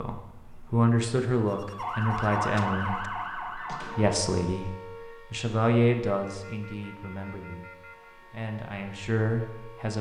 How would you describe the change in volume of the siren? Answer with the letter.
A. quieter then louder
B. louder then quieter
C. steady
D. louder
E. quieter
E.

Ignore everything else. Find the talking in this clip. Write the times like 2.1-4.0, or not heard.
0.0-9.9.